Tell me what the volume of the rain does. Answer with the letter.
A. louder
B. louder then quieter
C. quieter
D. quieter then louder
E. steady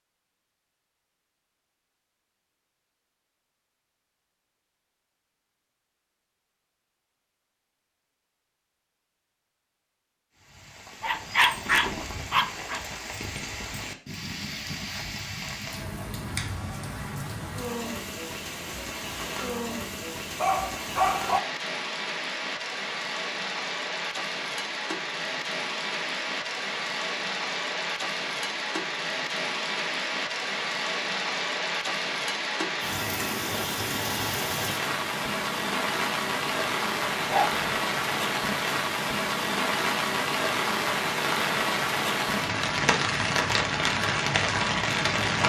A.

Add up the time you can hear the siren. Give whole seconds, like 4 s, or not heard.
not heard.